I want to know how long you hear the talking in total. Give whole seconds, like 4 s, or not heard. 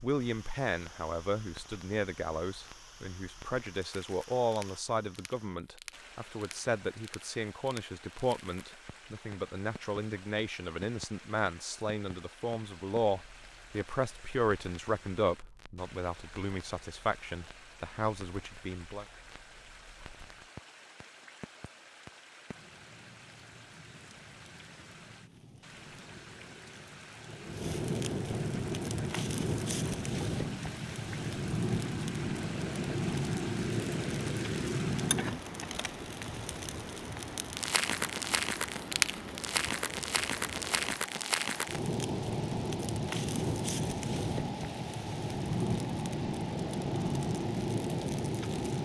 19 s.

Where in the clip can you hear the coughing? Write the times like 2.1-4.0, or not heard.
not heard.